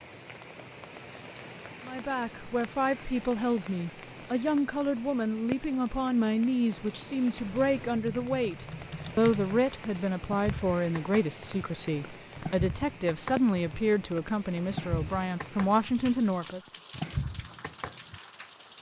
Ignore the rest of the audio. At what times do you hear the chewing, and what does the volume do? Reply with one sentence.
You can't hear the chewing here.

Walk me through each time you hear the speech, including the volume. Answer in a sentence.
The speech can be heard from 1.9 to 16.6 s, at a steady volume.